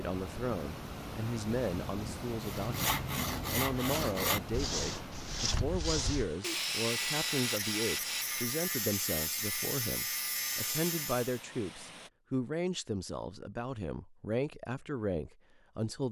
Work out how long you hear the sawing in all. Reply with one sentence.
The sawing can be heard for 9 seconds in total.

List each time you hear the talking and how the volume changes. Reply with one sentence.
You can hear the talking from 0.0 to 16.0 s, at a steady volume.